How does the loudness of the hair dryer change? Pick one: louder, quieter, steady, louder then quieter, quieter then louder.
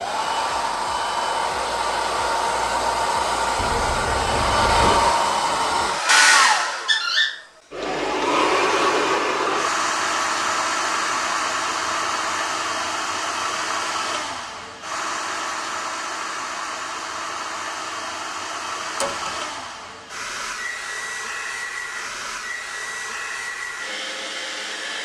quieter.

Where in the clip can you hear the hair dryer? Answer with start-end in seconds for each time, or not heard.
0.0-25.0.